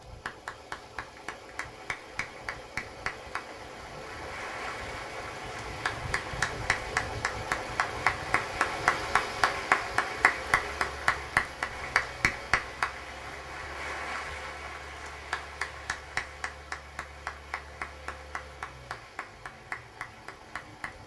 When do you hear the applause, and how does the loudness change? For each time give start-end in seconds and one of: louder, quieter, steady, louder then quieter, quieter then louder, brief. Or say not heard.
0.0-21.0 louder then quieter.